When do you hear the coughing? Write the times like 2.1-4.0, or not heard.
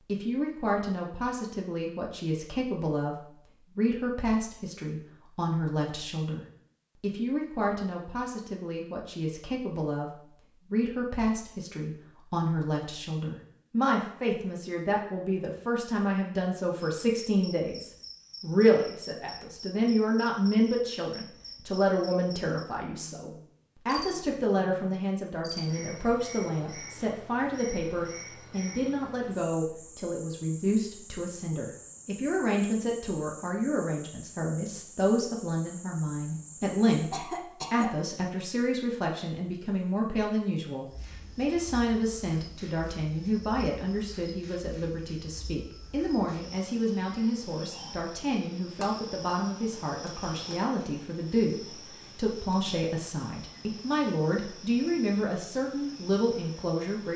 37.1-38.0.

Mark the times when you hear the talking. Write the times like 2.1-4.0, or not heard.
0.1-57.1.